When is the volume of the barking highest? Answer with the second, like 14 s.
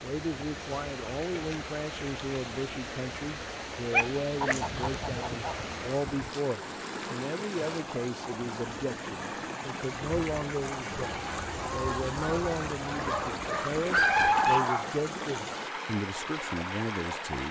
14 s.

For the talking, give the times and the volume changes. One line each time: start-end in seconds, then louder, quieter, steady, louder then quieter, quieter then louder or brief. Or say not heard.
0.0-17.4 steady.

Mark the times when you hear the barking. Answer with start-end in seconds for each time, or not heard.
3.9-5.0, 13.1-14.9.